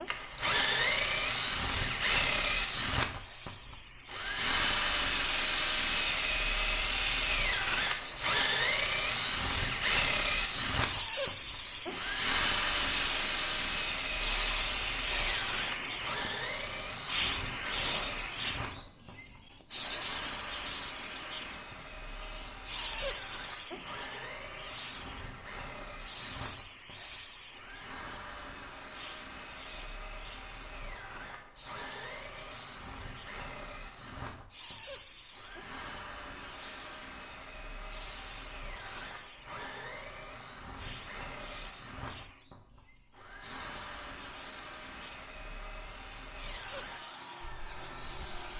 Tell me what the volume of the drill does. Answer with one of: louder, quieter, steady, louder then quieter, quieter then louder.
quieter.